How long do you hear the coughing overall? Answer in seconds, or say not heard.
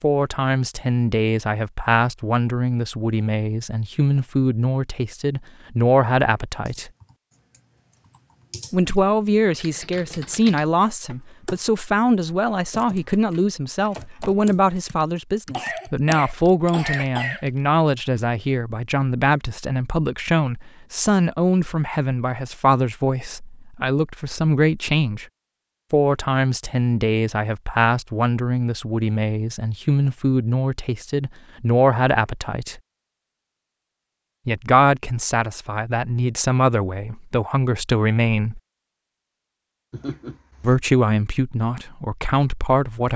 3 s.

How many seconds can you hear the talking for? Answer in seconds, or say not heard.
37 s.